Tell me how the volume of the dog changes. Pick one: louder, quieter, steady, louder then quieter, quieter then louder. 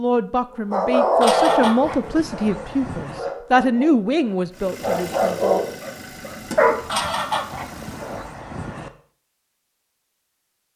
quieter then louder.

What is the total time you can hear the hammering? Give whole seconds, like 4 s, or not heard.
not heard.